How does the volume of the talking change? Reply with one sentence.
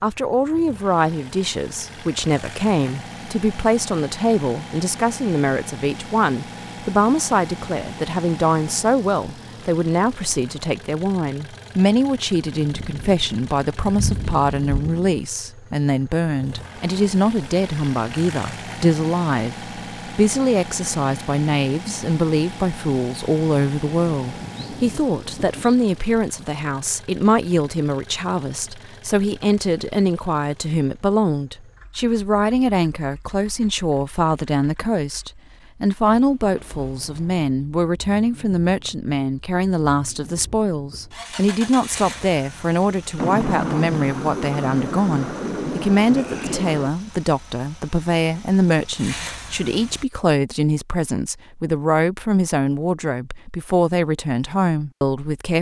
The loudness of the talking stays about the same.